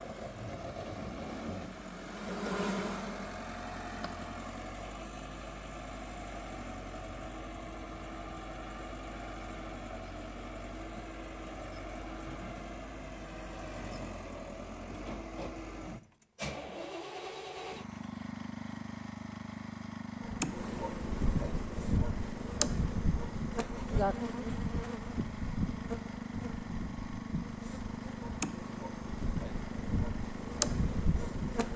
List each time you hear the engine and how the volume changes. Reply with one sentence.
The engine can be heard from 0.0 to 31.7 s, at a steady volume.